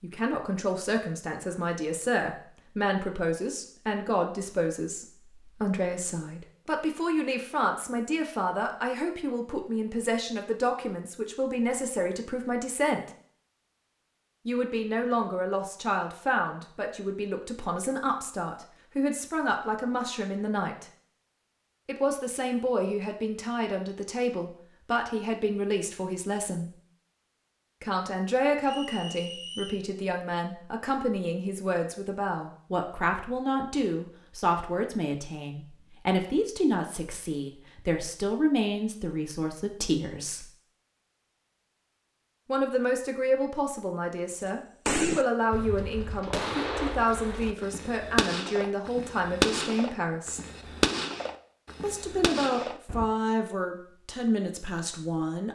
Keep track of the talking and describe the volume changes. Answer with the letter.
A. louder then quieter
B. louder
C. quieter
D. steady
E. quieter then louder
D.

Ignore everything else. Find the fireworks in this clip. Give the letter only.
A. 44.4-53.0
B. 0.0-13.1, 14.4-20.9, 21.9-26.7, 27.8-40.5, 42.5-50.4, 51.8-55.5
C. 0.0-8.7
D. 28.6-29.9
A.